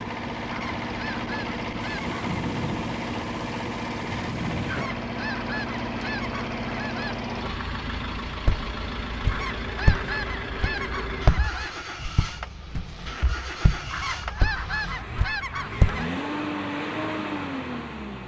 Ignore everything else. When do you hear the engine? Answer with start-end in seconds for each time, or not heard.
0.0-18.2.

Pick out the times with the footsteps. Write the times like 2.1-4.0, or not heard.
8.4-16.1.